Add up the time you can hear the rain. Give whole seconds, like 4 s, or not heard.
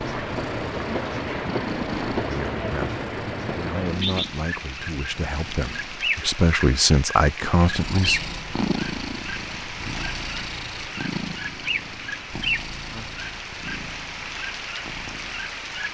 16 s.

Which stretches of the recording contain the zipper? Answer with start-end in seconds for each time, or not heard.
not heard.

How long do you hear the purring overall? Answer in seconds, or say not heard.
14 s.